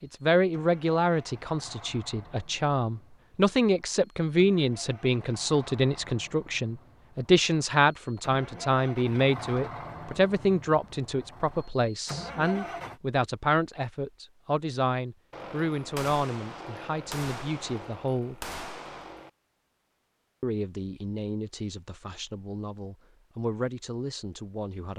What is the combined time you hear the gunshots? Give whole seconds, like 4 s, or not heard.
4 s.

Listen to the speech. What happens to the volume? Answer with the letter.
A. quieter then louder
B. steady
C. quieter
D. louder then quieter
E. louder
C.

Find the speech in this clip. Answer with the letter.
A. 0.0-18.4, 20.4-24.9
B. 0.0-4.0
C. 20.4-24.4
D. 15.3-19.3
A.